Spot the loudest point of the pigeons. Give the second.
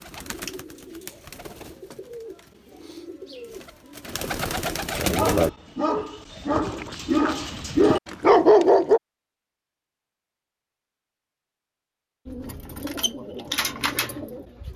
5 s.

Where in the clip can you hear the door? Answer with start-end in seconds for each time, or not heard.
not heard.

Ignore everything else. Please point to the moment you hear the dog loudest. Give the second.
8 s.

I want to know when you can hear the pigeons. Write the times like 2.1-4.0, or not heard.
0.0-5.5, 12.2-14.7.